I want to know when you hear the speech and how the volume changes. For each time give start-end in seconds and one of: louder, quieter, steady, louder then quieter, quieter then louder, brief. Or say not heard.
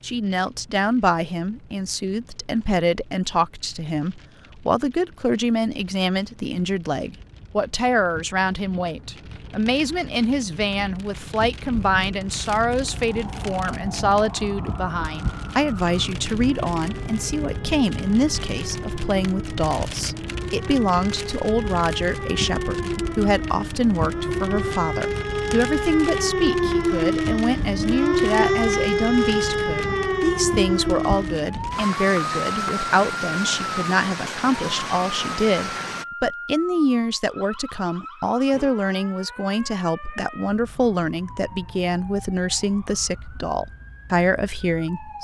0.0-45.1 steady.